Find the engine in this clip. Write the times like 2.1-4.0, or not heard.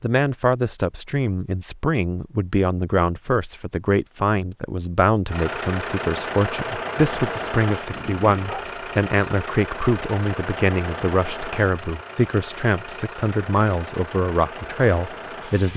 5.2-15.7.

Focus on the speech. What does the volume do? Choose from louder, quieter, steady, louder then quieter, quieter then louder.
steady.